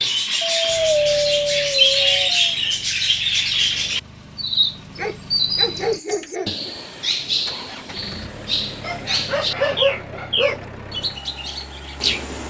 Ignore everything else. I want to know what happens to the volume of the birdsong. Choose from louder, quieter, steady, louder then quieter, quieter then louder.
quieter.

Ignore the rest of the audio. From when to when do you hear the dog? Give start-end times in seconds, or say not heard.
0.4-2.5, 5.0-6.7, 8.8-10.7.